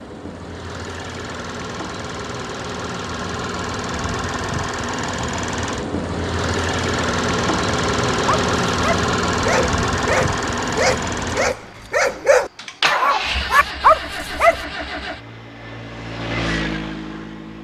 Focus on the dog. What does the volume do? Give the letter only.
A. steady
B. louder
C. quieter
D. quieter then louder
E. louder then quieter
B.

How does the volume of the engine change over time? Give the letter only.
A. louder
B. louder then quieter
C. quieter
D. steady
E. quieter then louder
B.